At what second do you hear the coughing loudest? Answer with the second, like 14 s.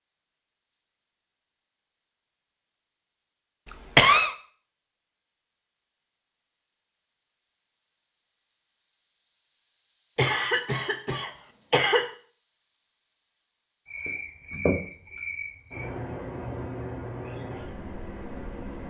4 s.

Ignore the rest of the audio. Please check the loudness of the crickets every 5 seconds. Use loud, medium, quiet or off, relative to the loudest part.
quiet, medium, loud, medium.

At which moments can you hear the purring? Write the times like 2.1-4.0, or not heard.
not heard.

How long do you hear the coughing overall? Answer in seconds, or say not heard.
3 s.